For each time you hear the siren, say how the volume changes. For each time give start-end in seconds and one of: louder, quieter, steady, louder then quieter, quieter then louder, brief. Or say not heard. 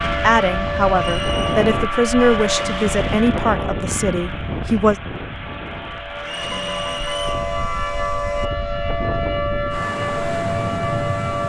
0.0-11.4 quieter then louder.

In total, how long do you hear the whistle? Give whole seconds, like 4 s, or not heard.
2 s.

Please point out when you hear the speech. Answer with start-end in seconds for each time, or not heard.
0.2-5.0.